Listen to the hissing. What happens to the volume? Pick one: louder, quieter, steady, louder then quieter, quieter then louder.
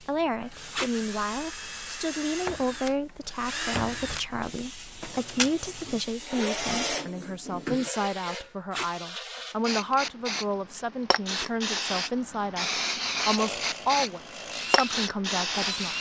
louder.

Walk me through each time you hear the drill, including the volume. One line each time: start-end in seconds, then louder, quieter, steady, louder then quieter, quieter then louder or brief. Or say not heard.
0.0-7.9 louder
13.3-15.9 brief.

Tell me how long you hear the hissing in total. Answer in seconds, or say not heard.
16 s.